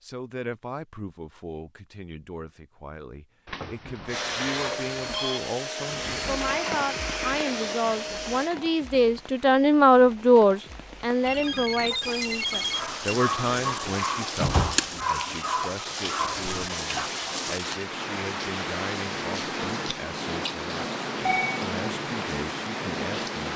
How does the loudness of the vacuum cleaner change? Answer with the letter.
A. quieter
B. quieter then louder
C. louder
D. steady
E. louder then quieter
D.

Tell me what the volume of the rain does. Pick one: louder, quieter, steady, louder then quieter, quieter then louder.
louder.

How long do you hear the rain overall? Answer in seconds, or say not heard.
18 s.